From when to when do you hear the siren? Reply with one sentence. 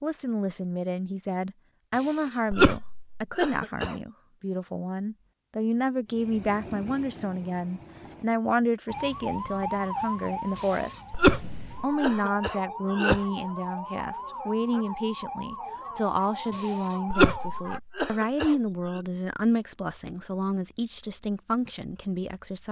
The siren can be heard from 8.8 to 17.8 s.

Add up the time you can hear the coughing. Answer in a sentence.
You can hear the coughing for 7 seconds altogether.